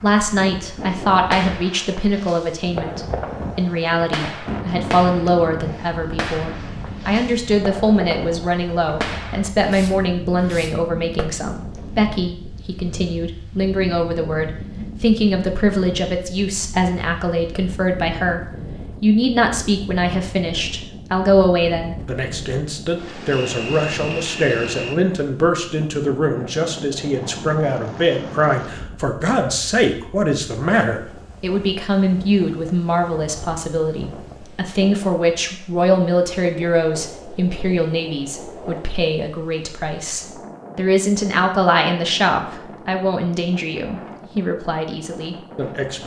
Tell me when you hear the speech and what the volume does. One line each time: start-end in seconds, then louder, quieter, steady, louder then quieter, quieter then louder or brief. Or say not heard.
0.0-46.0 steady.